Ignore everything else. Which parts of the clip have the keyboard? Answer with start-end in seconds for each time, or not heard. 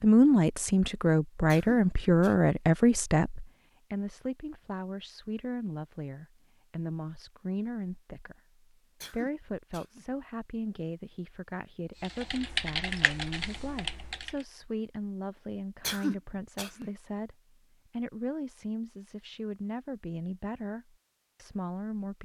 12.0-14.4.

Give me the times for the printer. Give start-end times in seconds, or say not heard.
not heard.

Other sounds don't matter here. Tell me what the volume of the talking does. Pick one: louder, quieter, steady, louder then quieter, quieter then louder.
quieter.